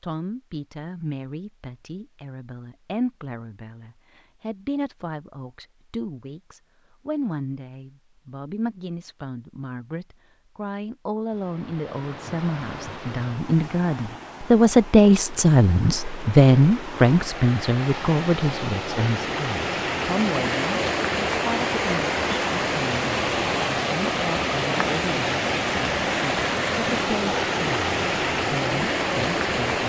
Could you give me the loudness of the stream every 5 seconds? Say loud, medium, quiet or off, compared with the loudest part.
off, off, quiet, medium, loud, loud.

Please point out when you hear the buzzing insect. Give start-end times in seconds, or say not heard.
not heard.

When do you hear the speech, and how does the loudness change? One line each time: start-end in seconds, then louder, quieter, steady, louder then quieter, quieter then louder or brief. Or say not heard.
0.0-29.8 louder then quieter.